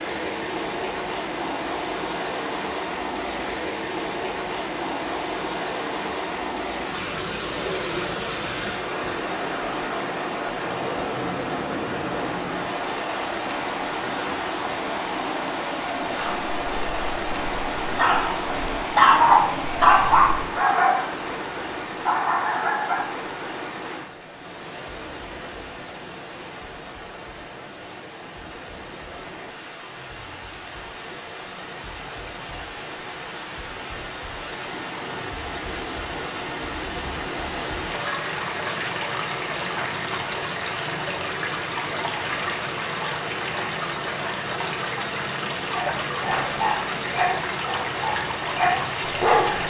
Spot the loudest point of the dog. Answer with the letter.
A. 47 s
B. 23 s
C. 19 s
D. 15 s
C.